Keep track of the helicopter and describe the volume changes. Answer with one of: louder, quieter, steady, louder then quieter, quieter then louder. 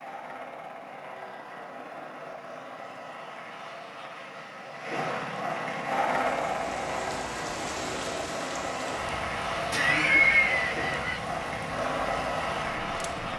louder.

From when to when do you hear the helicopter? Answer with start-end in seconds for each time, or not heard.
0.0-13.3.